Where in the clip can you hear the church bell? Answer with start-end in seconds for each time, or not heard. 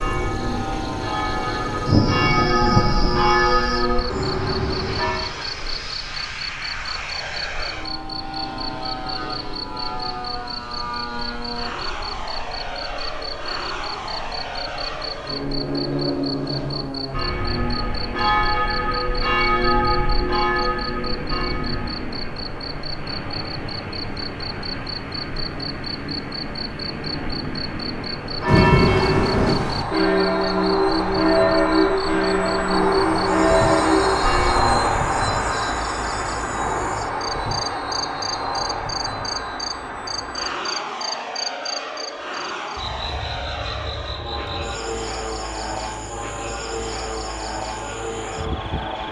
0.0-5.2, 15.6-22.1, 28.2-34.9.